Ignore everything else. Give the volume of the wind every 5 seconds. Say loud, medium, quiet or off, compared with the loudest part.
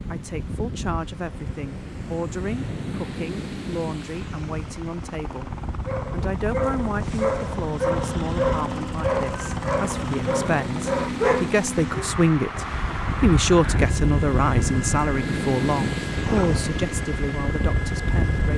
medium, medium, loud, loud.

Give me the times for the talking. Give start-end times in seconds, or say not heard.
0.1-5.5, 6.1-18.5.